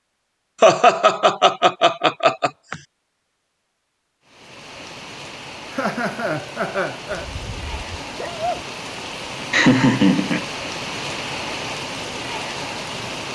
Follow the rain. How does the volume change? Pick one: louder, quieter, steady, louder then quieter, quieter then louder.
louder.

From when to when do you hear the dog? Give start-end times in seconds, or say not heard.
7.2-8.7.